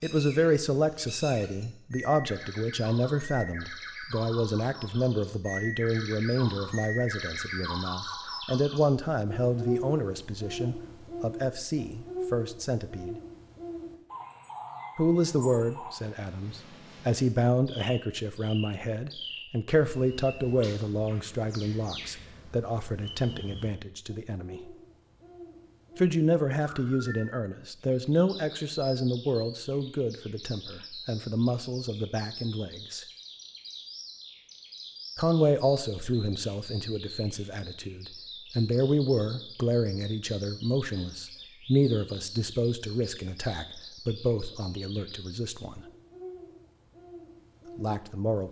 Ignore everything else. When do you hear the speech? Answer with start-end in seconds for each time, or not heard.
0.0-13.2, 14.9-24.8, 25.9-33.0, 35.1-45.9, 47.8-48.4.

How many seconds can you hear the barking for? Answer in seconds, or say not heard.
not heard.